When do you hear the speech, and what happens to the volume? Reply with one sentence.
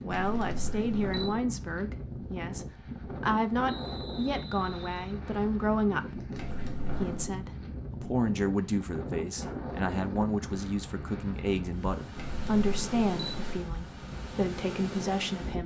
You can hear the speech from 0.0 to 15.6 s, at a steady volume.